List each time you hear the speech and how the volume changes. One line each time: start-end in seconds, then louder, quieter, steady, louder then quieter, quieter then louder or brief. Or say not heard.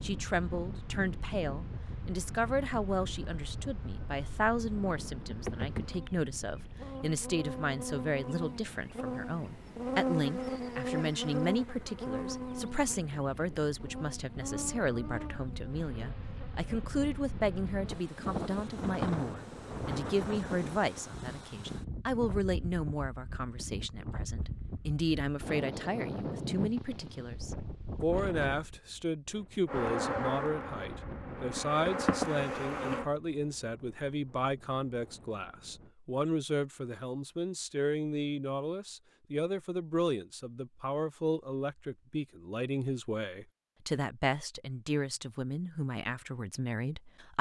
0.0-47.3 steady.